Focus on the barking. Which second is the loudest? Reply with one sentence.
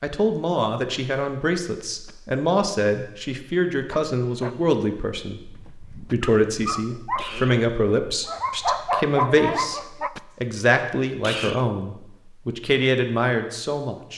The volume of the barking peaks at 9 seconds.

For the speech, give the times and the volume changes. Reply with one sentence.
You can hear the speech from 0.0 to 14.1 s, at a steady volume.